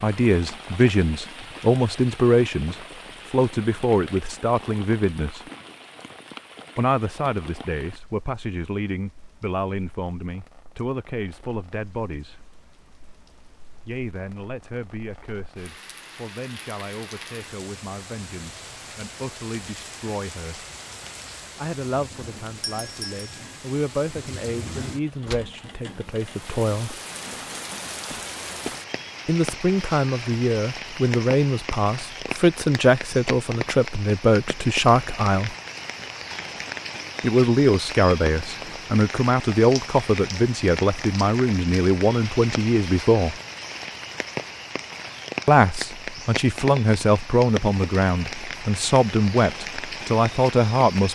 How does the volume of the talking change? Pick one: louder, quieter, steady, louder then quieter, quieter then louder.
quieter then louder.